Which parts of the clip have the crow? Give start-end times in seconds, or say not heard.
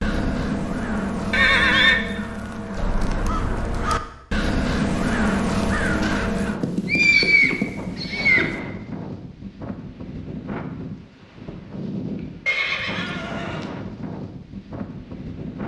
0.0-6.6.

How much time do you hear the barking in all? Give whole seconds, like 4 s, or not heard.
not heard.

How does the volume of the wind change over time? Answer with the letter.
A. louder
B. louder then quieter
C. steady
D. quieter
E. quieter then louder
C.